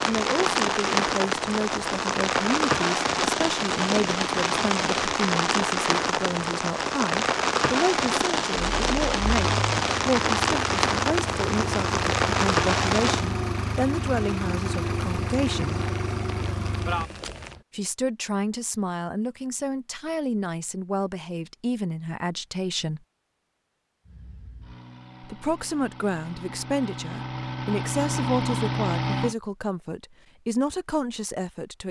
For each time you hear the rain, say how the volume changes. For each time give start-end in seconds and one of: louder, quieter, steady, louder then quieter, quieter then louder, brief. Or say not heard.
0.0-17.6 quieter.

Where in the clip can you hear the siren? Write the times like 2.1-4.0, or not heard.
not heard.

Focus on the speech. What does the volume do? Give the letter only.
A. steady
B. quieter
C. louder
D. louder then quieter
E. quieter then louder
A.